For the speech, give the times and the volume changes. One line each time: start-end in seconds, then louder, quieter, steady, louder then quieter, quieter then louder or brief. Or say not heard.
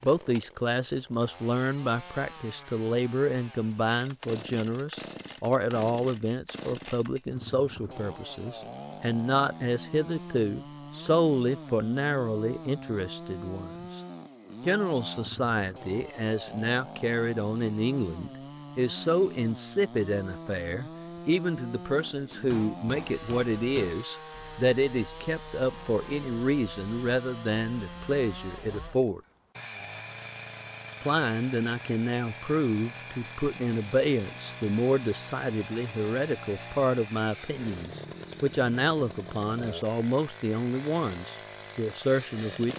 0.0-14.0 steady
14.7-29.2 steady
31.0-42.7 steady.